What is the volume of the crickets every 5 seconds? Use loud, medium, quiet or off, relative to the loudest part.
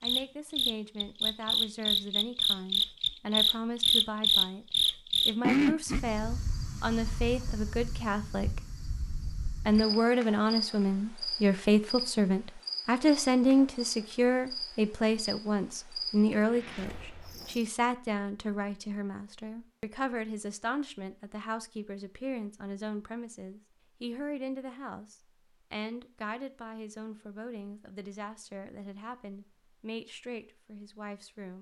loud, medium, quiet, quiet, off, off, off.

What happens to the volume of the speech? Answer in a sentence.
The volume of the speech goes up, then down.